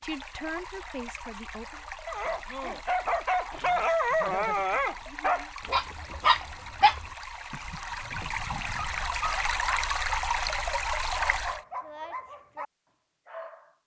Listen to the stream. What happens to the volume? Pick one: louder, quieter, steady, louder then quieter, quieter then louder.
louder.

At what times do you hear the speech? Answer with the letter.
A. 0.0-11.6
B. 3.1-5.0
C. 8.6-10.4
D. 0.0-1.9
D.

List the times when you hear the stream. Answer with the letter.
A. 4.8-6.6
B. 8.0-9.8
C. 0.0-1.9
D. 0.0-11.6
D.